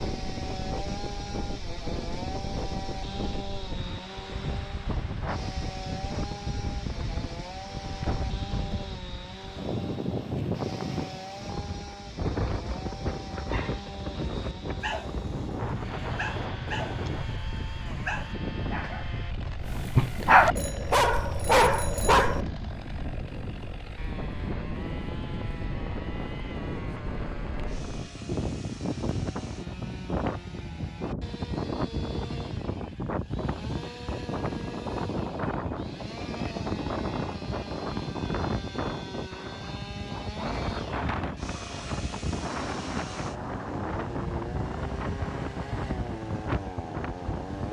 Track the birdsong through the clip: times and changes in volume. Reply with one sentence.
The birdsong can't be heard in this clip.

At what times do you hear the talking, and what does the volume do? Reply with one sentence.
The talking can't be heard in this clip.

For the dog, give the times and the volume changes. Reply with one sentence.
The dog can be heard from 13.5 to 22.4 s, getting louder.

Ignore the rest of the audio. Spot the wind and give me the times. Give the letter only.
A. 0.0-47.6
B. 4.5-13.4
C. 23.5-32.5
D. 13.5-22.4
A.